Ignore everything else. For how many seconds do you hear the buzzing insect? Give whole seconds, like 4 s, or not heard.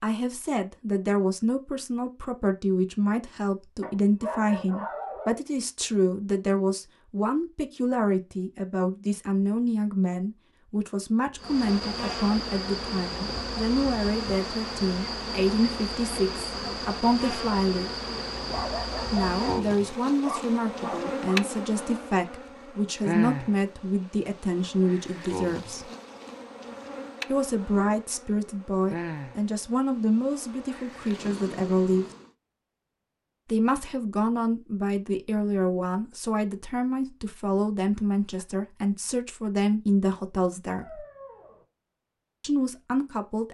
21 s.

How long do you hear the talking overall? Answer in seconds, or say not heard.
38 s.